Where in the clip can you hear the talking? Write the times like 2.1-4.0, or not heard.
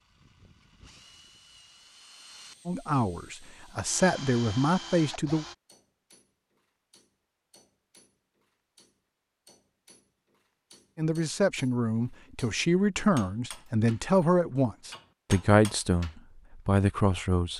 2.6-5.5, 10.9-17.5.